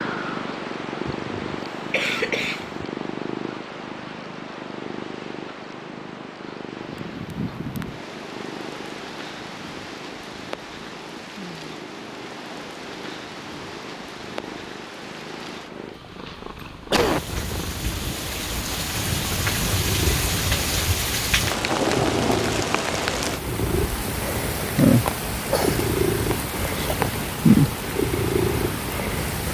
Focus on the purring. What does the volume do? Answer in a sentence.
The volume of the purring goes down, then up.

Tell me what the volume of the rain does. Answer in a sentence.
The loudness of the rain goes up.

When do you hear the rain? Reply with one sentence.
The rain can be heard from 6.8 to 29.4 s.